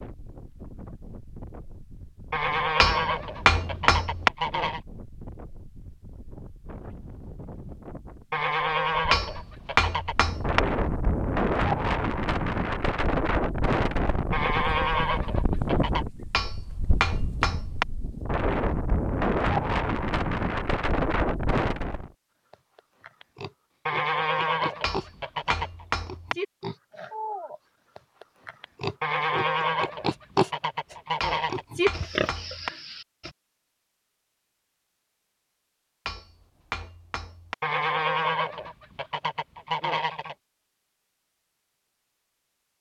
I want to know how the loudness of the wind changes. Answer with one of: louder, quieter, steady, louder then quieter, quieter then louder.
louder.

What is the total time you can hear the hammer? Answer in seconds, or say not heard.
9 s.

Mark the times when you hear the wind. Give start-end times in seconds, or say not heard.
0.0-22.1.